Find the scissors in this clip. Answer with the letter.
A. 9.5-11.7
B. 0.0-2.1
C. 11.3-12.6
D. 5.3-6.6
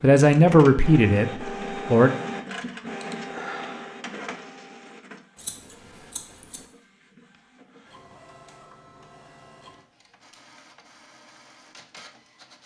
D.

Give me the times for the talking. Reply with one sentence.
The talking can be heard from 0.0 to 2.1 s.